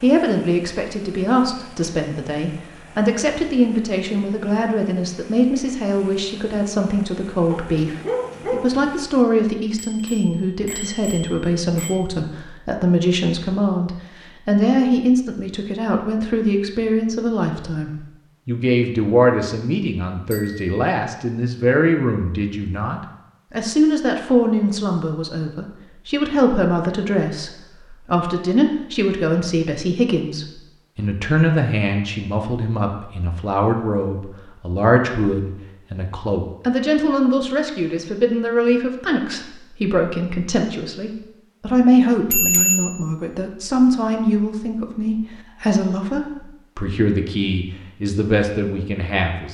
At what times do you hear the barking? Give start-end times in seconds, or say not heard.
7.5-8.8.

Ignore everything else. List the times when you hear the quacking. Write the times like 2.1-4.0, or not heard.
not heard.